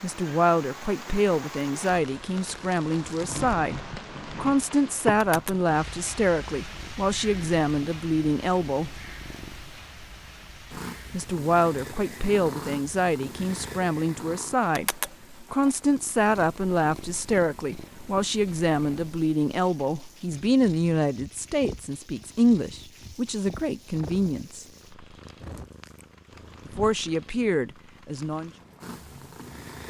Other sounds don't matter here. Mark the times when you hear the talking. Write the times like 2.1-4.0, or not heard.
0.0-3.8, 4.4-9.0, 11.1-24.6, 26.6-28.5.